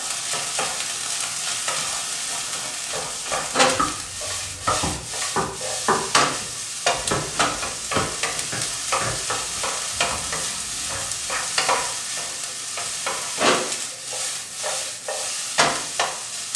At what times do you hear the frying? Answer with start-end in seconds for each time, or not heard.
0.0-16.5.